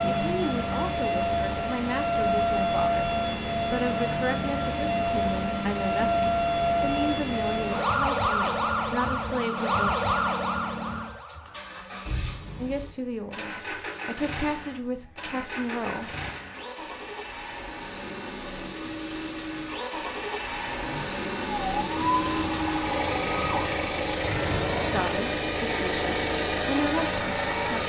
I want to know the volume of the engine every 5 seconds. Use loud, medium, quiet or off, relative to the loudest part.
medium, medium, medium, medium, loud, loud.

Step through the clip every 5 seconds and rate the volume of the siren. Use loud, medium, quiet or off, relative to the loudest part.
loud, loud, loud, off, medium, medium.